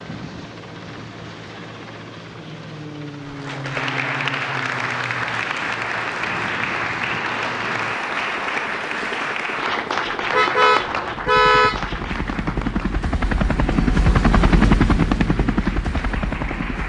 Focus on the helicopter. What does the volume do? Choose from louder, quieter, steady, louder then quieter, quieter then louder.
louder.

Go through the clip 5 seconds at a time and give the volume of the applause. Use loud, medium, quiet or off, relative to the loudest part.
loud, loud, loud, medium.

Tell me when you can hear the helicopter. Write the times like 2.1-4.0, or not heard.
0.0-16.8.